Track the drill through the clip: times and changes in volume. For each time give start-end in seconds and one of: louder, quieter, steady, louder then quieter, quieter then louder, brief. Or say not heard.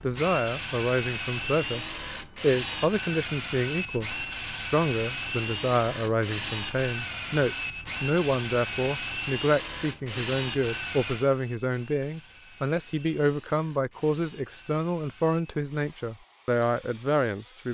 0.0-17.6 quieter.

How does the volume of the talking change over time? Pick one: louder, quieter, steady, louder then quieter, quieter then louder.
steady.